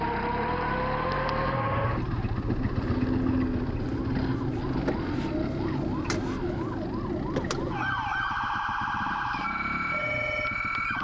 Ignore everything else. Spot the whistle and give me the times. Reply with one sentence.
The whistle can't be heard in this clip.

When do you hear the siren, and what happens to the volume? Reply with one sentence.
The siren can be heard from 0.0 to 11.0 s, at a steady volume.